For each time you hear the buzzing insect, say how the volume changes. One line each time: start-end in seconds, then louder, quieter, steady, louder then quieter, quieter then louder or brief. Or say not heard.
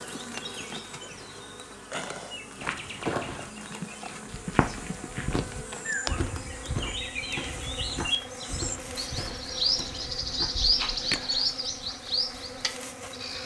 0.0-13.4 steady.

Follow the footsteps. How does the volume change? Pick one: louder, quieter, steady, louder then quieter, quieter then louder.
quieter.